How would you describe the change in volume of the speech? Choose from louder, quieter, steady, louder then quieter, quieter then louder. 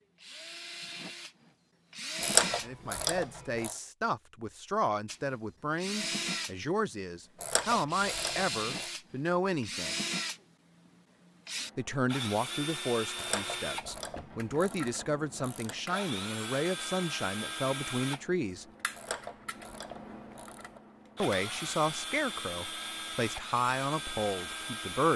steady.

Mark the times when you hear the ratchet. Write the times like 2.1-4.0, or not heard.
2.2-3.8, 7.4-8.9, 13.2-15.8, 18.9-20.8.